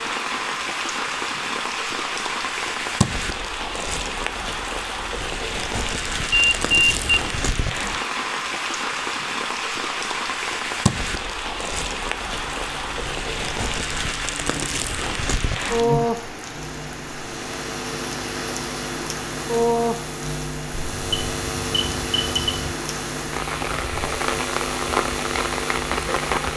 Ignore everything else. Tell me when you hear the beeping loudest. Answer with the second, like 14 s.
7 s.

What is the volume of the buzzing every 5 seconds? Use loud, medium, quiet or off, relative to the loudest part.
off, off, medium, loud, loud, loud.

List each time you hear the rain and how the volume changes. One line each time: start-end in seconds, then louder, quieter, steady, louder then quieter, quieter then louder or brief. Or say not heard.
0.0-26.5 steady.